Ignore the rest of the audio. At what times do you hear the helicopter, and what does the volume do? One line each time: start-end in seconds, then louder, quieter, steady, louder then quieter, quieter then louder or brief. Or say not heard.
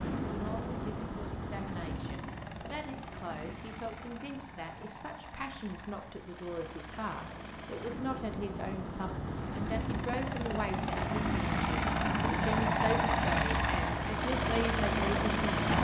0.0-15.7 quieter then louder.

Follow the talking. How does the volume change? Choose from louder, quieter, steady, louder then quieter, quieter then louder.
louder.